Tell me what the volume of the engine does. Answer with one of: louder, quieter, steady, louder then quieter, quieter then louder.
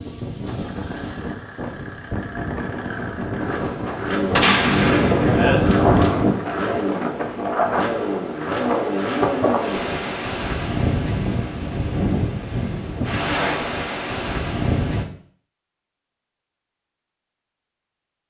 louder.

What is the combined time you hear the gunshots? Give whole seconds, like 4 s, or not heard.
2 s.